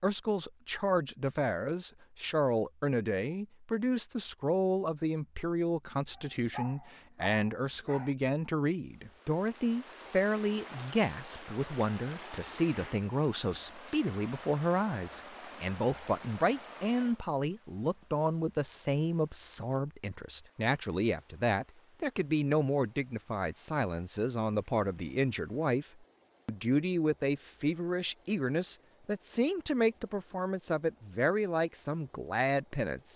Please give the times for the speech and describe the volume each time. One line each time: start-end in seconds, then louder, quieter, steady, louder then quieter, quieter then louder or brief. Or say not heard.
0.0-25.9 steady
26.4-33.1 steady.